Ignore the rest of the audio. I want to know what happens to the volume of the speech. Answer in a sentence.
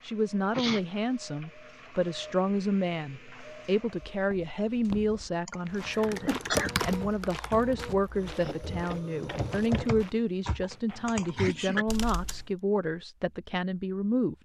The loudness of the speech stays about the same.